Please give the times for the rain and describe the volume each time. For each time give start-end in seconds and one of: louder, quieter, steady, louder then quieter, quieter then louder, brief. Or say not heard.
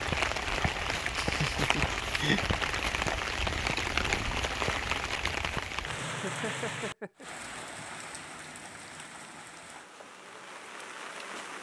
0.0-11.5 quieter.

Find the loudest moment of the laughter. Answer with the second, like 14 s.
2 s.